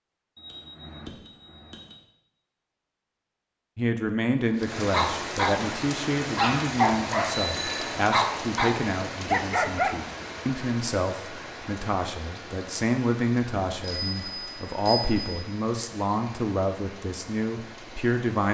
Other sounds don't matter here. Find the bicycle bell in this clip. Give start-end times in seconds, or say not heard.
0.3-2.0, 7.3-8.0, 13.6-15.4.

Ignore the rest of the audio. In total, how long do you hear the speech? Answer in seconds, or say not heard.
15 s.